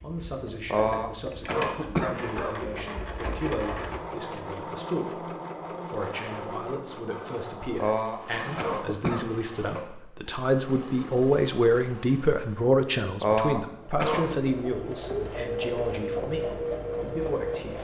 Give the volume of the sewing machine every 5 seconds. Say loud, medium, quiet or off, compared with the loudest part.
medium, medium, quiet, loud.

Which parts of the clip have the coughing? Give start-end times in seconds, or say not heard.
0.7-2.5, 7.8-9.3, 13.2-14.5.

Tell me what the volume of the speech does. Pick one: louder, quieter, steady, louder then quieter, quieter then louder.
louder then quieter.